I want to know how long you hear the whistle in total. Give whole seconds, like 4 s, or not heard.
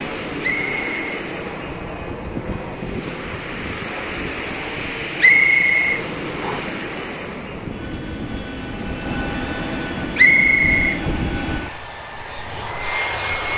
3 s.